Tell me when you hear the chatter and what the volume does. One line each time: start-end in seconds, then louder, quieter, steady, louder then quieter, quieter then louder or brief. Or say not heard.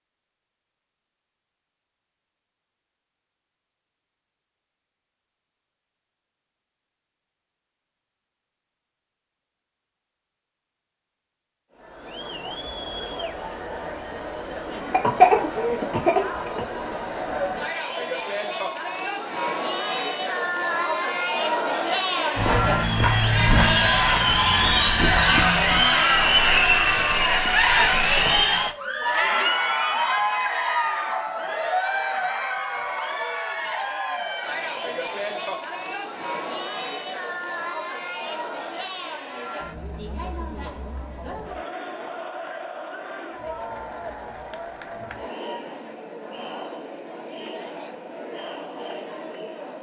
11.8-49.7 louder then quieter.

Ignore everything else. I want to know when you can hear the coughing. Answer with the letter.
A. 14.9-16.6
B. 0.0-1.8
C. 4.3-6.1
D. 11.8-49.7
A.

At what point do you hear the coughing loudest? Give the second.
15 s.